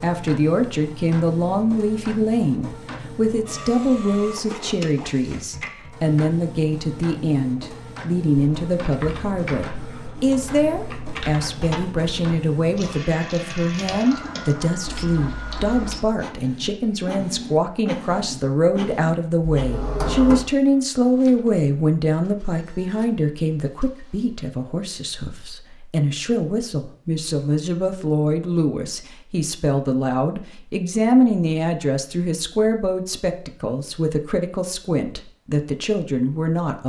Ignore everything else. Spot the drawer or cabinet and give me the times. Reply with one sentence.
The drawer or cabinet can be heard from 19.5 to 20.4 s.